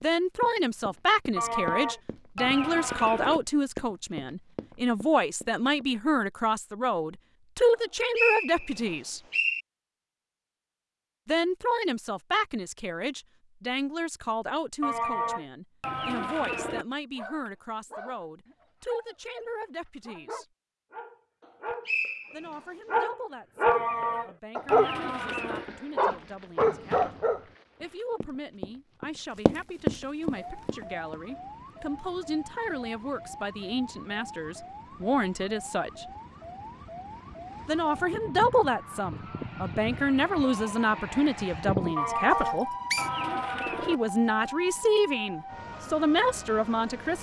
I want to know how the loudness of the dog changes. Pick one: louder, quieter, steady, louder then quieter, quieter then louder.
louder.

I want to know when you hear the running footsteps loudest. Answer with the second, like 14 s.
30 s.